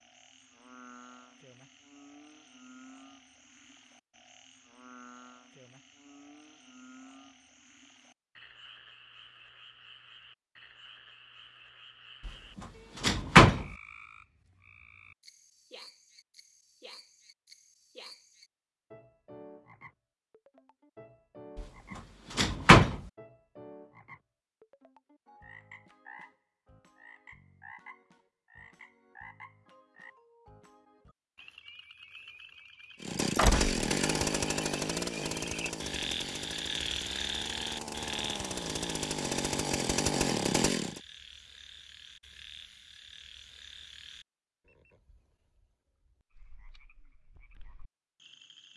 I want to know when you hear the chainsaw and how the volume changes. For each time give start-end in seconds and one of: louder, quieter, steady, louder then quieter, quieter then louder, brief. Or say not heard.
33.0-41.0 quieter then louder.